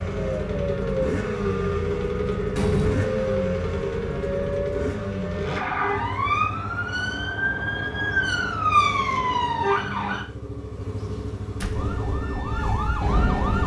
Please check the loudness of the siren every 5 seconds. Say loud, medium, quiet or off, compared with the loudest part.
medium, loud, loud.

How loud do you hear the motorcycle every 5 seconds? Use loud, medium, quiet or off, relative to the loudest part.
loud, medium, medium.